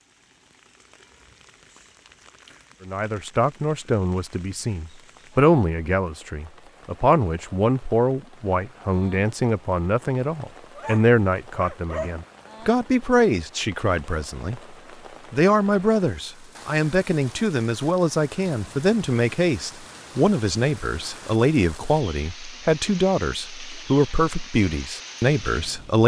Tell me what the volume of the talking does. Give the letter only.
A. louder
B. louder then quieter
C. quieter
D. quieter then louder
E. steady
E.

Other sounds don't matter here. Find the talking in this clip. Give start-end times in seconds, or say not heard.
2.9-26.0.